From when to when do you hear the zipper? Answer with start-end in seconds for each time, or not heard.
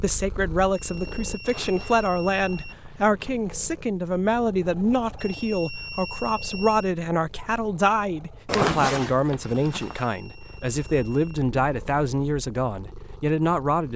1.4-3.3, 8.4-10.1.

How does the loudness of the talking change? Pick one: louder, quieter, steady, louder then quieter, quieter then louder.
steady.